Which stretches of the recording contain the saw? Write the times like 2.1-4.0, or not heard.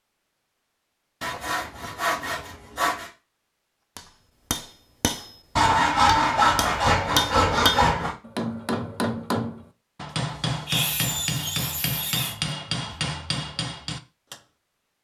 1.2-3.1, 5.5-8.2, 10.7-12.3.